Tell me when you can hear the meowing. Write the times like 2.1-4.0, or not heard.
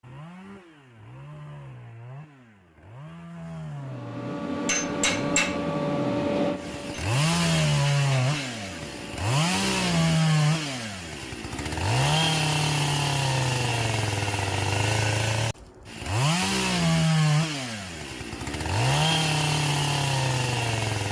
not heard.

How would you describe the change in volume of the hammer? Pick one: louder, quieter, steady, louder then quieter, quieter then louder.
quieter.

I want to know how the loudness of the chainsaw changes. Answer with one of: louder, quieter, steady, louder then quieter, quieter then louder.
louder.